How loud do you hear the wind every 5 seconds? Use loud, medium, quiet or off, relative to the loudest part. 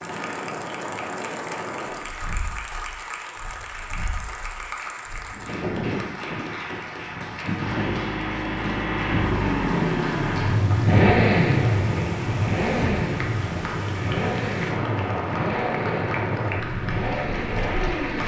medium, loud, loud, loud.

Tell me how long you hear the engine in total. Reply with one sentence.
The engine can be heard for 11 seconds in total.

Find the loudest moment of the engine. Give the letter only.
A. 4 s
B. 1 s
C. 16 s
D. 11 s
D.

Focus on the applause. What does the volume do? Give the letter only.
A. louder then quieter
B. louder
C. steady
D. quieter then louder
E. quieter
C.